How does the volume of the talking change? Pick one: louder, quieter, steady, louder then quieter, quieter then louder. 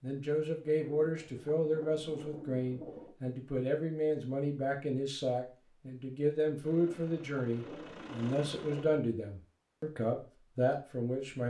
steady.